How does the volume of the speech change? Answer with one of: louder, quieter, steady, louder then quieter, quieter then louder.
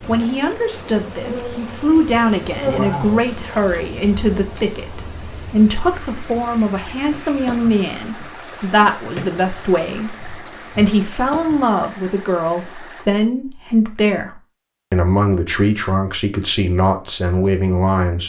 steady.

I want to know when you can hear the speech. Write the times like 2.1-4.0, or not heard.
0.1-14.3, 14.9-18.2.